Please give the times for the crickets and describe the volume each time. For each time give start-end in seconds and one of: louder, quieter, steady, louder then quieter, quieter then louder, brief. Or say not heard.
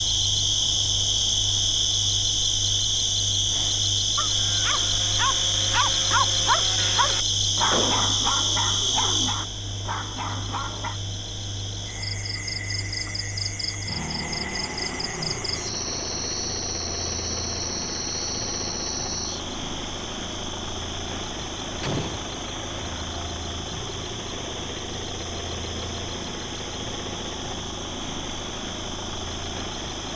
0.0-30.1 quieter.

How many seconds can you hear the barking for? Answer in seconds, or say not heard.
7 s.